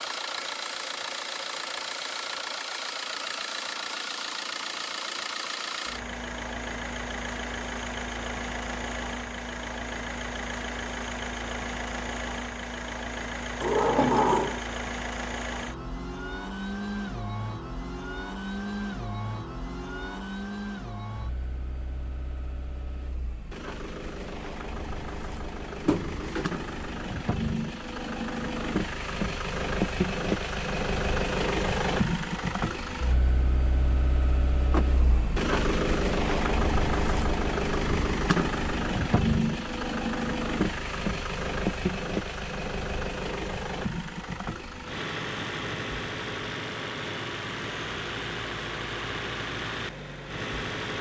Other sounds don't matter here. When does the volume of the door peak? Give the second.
14 s.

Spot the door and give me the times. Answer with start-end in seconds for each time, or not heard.
13.6-14.6, 25.9-26.9, 34.7-35.4.